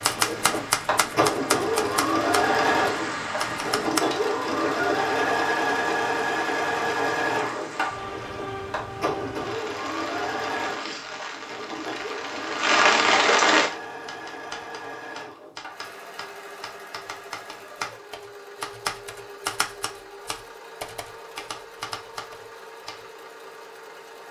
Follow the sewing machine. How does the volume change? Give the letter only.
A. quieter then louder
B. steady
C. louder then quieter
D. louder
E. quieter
E.